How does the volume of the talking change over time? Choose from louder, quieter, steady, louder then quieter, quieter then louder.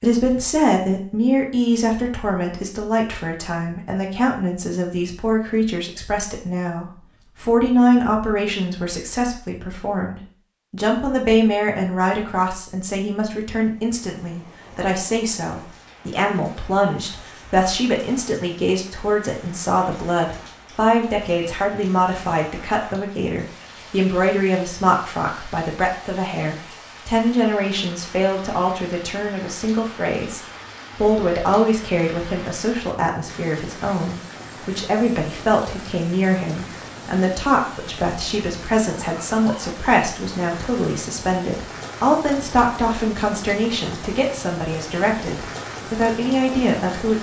steady.